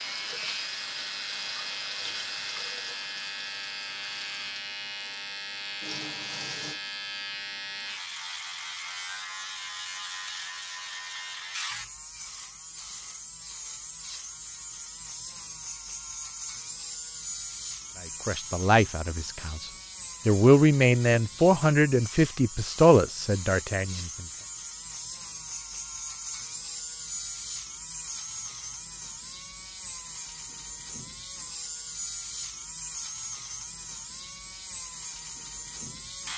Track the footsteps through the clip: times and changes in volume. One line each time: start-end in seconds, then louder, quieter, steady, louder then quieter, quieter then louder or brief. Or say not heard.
not heard.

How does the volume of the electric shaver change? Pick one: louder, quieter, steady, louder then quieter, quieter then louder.
steady.